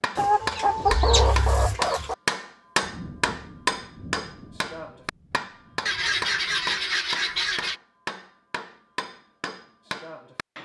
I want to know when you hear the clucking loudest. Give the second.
1 s.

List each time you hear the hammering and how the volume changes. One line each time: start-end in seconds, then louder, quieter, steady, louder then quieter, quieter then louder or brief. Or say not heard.
0.0-10.6 quieter.